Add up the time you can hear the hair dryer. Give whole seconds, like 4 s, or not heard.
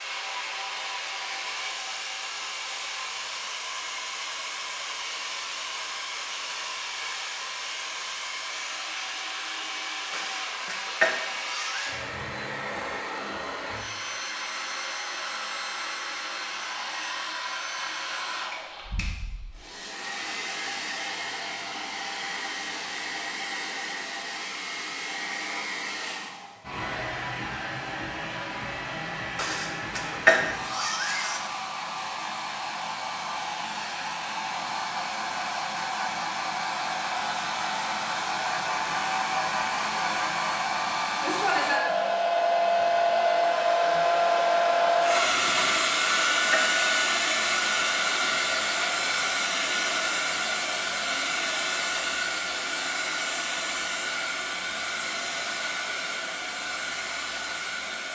58 s.